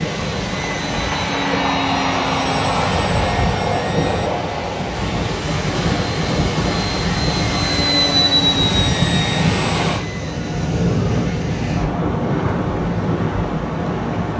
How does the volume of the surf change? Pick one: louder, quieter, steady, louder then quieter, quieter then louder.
steady.